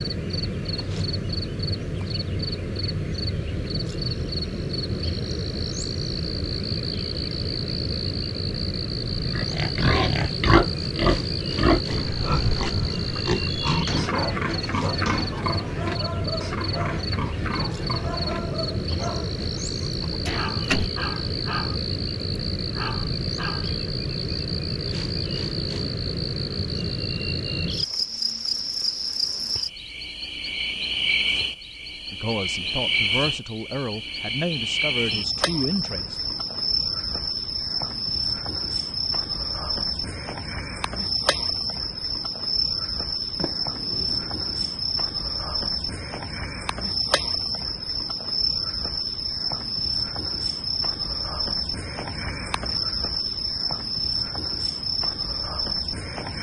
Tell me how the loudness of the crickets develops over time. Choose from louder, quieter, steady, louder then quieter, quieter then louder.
steady.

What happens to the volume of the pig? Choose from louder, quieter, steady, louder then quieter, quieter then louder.
quieter.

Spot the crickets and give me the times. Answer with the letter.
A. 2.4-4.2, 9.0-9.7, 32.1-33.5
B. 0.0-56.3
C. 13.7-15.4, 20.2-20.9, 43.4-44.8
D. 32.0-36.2
B.